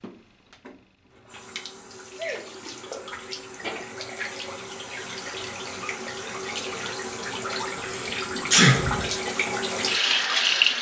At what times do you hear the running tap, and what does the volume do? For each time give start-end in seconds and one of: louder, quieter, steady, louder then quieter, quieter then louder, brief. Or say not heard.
0.0-10.7 louder.